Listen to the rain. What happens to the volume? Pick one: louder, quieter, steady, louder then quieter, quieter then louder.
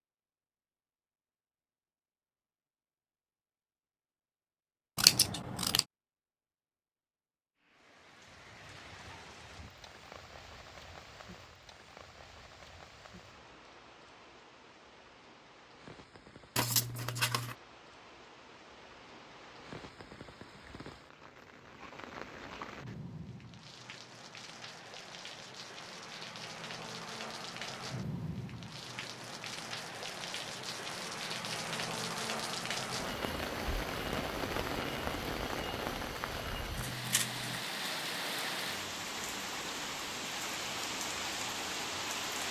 louder.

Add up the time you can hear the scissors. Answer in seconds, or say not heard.
3 s.